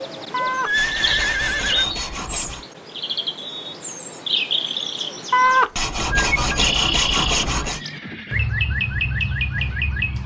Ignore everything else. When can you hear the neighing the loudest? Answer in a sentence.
The volume of the neighing peaks at 1 second.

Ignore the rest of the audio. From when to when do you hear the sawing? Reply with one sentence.
You can hear the sawing from 0.3 to 2.6 s and from 5.3 to 7.8 s.